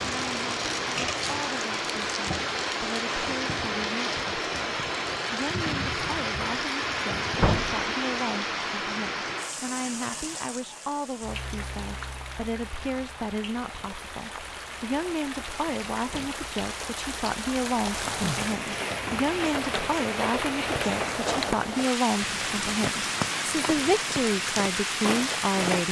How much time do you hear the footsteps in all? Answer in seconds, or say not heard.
4 s.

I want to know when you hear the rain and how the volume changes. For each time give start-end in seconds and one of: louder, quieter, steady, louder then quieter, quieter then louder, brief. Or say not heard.
0.0-25.8 quieter then louder.